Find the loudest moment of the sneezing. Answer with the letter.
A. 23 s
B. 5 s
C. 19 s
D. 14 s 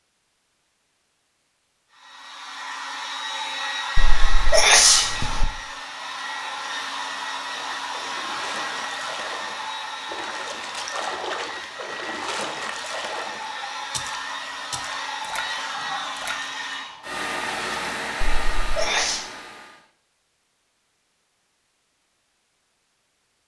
B.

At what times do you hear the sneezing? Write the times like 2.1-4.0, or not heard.
4.0-5.5, 18.2-19.2.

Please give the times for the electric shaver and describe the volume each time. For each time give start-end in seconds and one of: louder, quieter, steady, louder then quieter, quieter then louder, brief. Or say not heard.
not heard.